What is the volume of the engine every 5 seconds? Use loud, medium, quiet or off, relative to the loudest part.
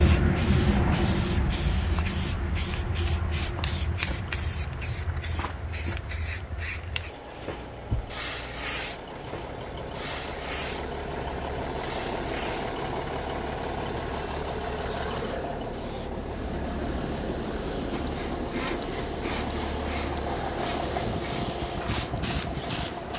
quiet, medium, loud, loud, loud.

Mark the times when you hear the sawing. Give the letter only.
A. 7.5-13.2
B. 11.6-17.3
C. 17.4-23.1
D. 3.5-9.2
C.